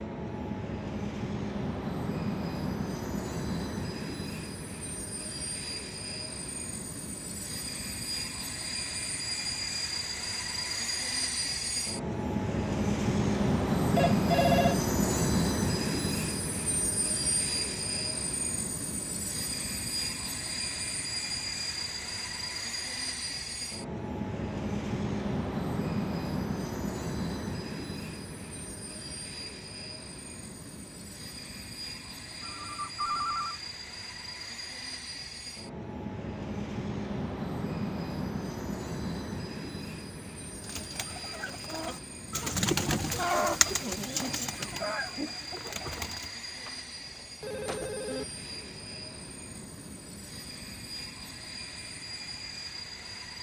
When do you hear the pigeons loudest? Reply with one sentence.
The volume of the pigeons peaks at 43 seconds.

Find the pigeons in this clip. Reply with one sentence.
The pigeons can be heard from 40.5 to 46.4 s.